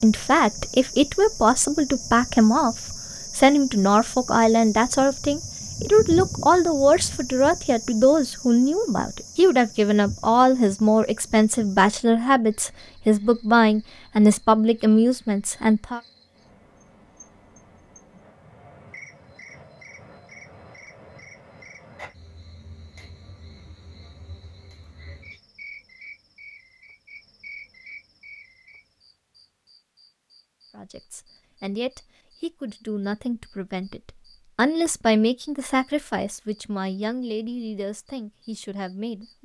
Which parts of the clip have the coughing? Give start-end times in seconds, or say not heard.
not heard.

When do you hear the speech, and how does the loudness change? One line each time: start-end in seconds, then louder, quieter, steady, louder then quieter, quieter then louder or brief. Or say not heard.
0.0-16.0 steady
30.7-39.4 louder then quieter.